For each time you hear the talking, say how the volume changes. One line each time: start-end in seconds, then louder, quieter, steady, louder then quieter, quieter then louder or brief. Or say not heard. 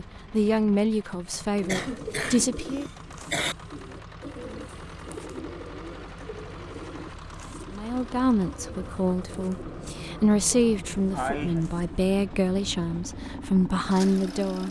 0.0-2.9 brief
7.7-14.6 steady.